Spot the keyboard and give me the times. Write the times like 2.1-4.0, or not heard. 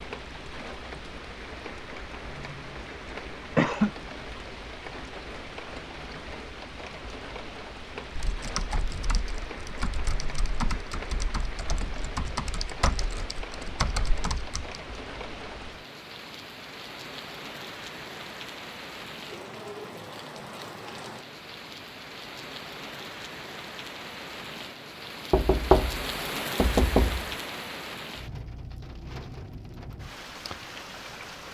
8.2-14.8.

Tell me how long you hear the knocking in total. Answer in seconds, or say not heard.
2 s.